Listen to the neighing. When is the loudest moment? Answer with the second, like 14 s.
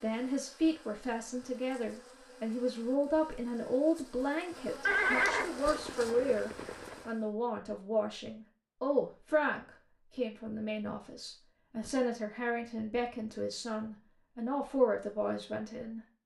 5 s.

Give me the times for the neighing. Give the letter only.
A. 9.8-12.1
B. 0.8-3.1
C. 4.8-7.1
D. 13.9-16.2
C.